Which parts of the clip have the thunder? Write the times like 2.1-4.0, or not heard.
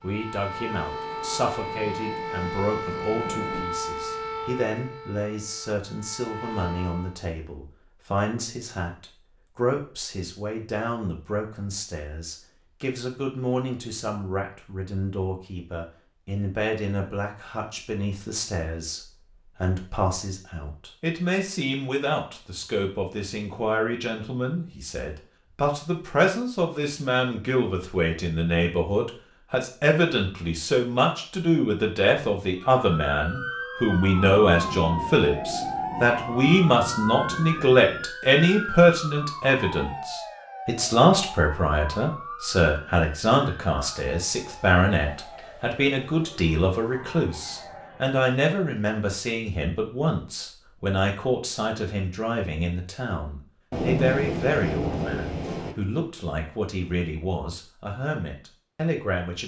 0.8-3.6, 34.1-38.0, 53.7-55.8.